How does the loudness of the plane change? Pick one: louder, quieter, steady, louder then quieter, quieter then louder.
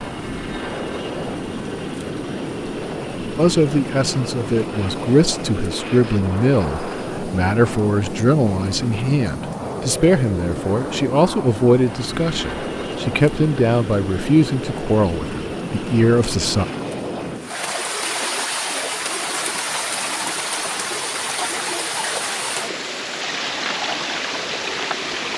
quieter.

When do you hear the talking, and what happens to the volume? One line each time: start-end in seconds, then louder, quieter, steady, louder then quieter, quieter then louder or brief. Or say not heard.
3.4-16.6 steady.